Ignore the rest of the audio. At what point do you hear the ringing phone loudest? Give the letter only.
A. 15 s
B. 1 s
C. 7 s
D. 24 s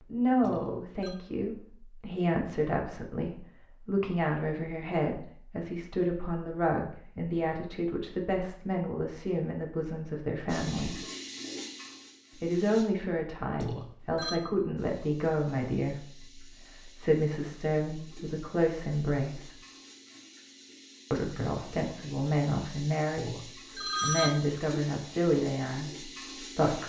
D.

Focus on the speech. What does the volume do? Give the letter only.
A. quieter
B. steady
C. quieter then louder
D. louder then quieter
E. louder
B.